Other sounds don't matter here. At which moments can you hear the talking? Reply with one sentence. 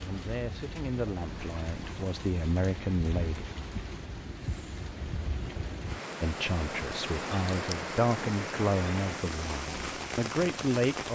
The talking can be heard from 0.0 to 3.5 s and from 6.2 to 11.1 s.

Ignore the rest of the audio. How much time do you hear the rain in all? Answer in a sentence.
The rain can be heard for 11 seconds in total.